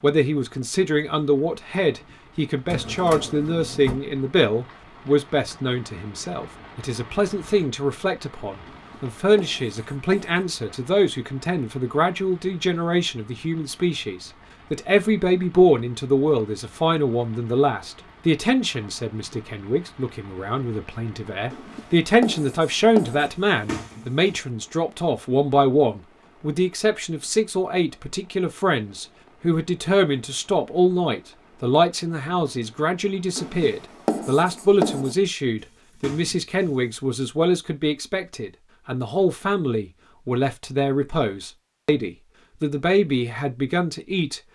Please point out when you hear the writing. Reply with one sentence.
You can hear the writing from 8.7 to 10.4 s, from 21.5 to 23.3 s and from 33.4 to 35.1 s.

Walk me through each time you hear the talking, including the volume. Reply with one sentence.
The talking can be heard from 0.0 to 44.4 s, at a steady volume.